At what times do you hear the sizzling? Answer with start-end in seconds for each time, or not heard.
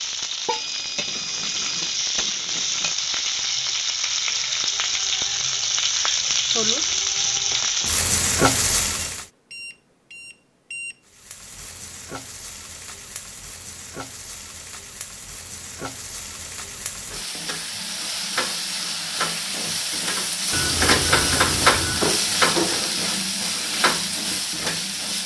0.0-9.2, 11.1-25.2.